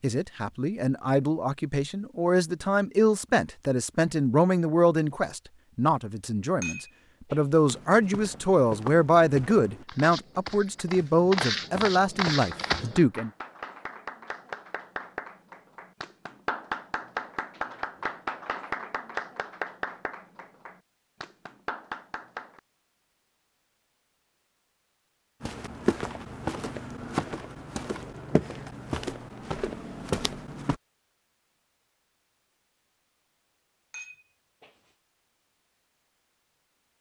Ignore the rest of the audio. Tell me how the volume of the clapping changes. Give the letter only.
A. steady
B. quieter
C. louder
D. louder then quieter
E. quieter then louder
D.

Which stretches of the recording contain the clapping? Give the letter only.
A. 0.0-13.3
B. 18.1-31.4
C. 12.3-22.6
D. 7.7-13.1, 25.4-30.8
C.